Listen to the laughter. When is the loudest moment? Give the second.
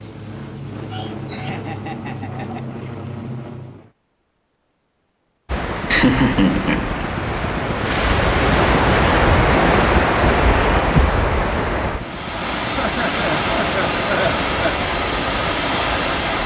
6 s.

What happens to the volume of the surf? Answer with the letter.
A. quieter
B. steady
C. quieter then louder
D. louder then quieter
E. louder
D.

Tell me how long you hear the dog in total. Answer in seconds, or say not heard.
not heard.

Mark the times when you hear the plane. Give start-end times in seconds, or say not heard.
0.0-3.9, 11.9-16.4.